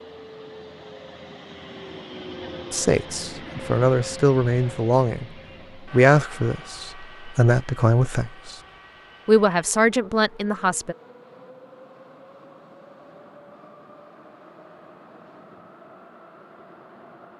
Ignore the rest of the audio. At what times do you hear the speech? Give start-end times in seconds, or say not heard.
2.7-5.2, 5.8-8.6, 9.2-10.9.